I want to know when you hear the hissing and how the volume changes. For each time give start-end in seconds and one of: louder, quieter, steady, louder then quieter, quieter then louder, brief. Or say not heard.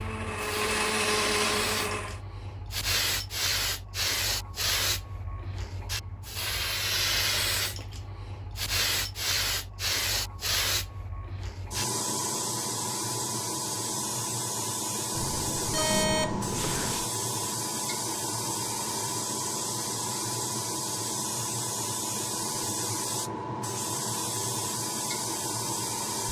0.0-26.2 steady.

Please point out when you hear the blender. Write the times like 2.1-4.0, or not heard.
0.0-2.2.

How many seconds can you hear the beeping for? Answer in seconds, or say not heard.
2 s.